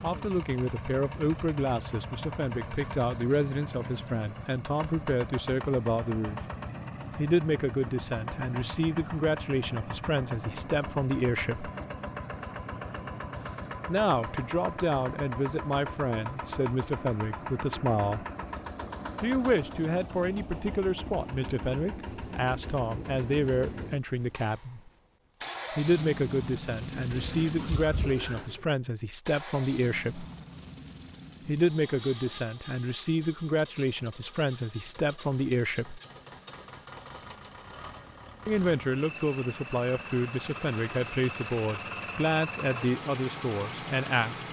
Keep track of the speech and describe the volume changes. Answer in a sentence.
The volume of the speech stays about the same.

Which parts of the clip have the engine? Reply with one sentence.
You can hear the engine from 0.0 to 44.4 s.